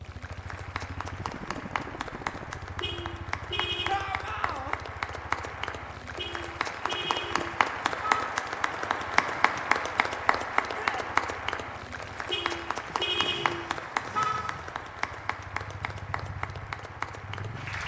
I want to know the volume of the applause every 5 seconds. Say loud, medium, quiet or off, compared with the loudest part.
medium, loud, loud, medium.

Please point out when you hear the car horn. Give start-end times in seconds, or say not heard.
2.8-4.0, 6.2-8.3, 12.3-14.6.